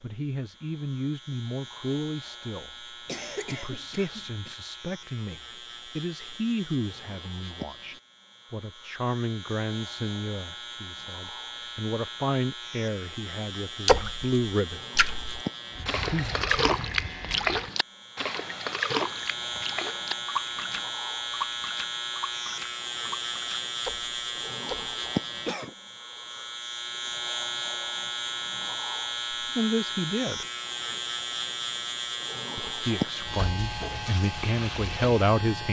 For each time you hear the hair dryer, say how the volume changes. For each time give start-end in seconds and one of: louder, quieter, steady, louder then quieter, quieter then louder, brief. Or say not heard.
not heard.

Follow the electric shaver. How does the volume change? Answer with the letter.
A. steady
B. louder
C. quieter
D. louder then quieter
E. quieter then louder
B.